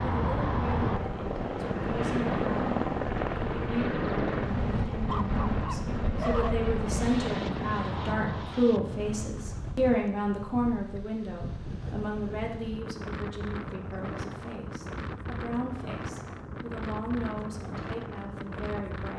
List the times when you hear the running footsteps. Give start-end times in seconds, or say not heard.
not heard.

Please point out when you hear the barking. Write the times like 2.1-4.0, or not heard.
4.9-6.5.